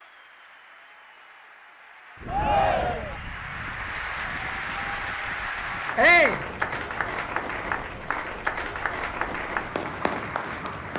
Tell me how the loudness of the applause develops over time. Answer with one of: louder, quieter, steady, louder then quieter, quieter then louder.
louder.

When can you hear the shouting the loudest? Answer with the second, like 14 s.
6 s.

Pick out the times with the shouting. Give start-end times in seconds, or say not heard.
2.2-3.2, 6.0-6.4.